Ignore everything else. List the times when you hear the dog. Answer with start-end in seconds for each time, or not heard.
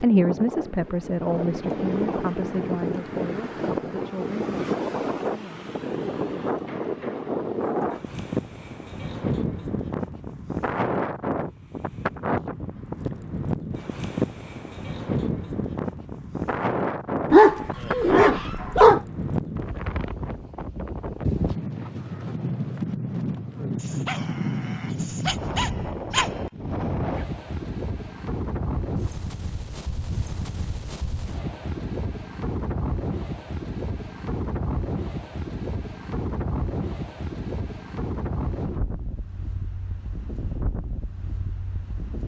17.3-19.0, 23.8-26.3.